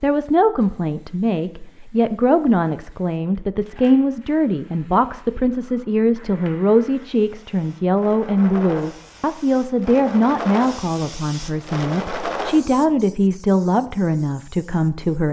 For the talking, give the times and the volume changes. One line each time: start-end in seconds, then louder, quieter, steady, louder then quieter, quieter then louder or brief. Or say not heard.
0.0-15.2 steady.